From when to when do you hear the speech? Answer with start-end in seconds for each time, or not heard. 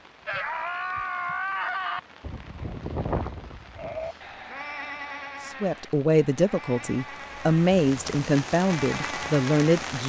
5.5-10.0.